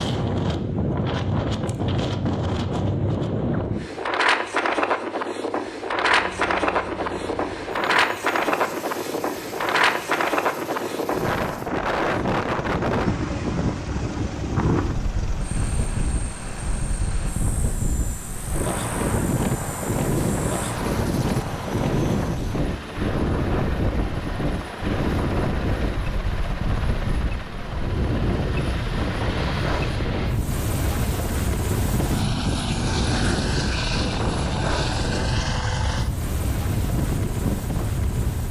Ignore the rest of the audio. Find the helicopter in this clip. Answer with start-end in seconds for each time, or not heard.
5.8-38.4.